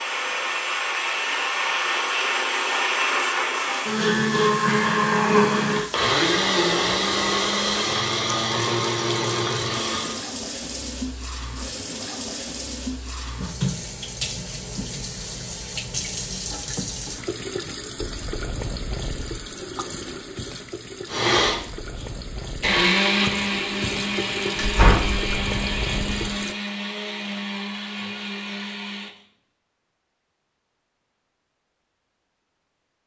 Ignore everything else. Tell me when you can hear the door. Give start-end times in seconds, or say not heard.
24.6-25.3.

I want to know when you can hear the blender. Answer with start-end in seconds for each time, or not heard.
0.0-10.2, 21.1-29.2.